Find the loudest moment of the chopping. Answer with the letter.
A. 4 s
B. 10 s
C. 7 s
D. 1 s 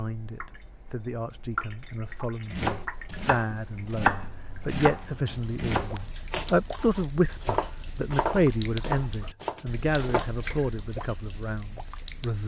A.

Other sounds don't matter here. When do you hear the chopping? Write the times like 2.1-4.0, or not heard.
2.5-10.8.